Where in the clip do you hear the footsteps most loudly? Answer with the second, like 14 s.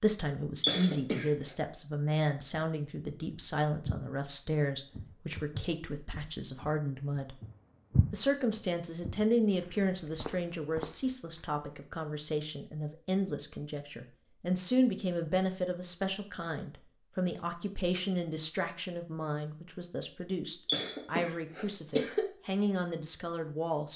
8 s.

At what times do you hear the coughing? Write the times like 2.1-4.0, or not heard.
0.6-1.6, 20.6-22.2.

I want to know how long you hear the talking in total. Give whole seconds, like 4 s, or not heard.
23 s.